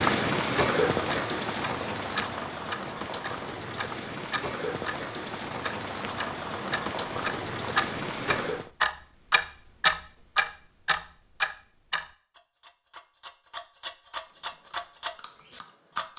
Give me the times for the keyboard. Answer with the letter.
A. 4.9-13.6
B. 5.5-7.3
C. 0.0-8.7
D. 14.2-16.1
D.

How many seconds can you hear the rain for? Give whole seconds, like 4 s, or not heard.
9 s.